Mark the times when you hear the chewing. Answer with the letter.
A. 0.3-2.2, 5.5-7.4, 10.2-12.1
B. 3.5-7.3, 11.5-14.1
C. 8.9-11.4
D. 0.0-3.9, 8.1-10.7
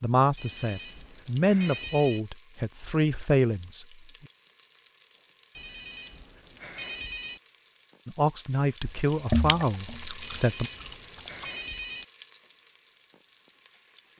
C.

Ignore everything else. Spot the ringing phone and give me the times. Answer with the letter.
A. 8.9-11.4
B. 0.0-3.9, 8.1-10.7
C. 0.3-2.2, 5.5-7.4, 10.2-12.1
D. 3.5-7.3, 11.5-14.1
C.